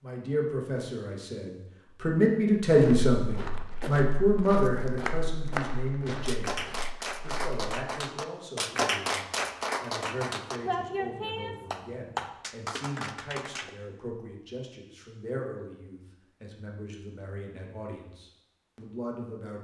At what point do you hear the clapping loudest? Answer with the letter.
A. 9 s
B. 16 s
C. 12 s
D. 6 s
A.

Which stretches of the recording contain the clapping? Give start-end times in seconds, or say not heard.
5.0-13.7.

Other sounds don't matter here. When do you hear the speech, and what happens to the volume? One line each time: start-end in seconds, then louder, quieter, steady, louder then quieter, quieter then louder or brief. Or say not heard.
0.0-19.5 quieter.